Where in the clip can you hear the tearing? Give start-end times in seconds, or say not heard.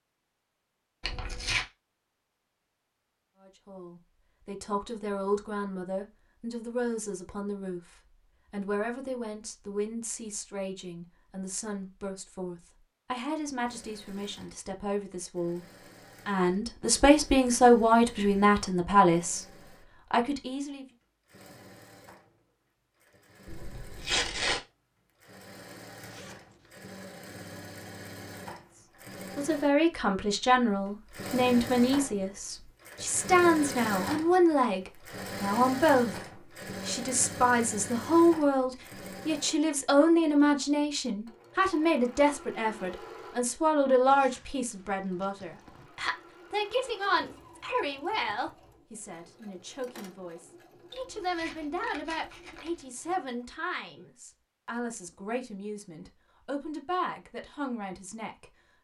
1.0-1.6, 23.4-24.6, 51.0-52.8.